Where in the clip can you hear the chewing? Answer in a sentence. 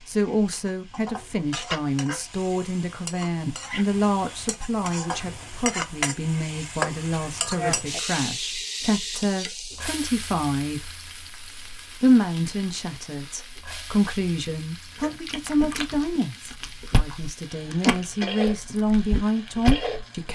The chewing can be heard from 15.0 to 20.1 s.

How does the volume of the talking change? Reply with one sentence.
The volume of the talking stays about the same.